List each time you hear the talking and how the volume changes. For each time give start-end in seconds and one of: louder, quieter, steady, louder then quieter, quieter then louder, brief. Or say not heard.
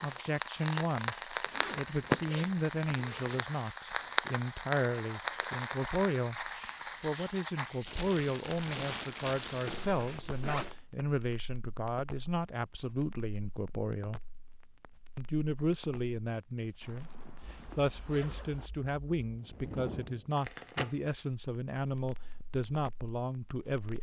0.0-14.2 steady
15.2-23.9 steady.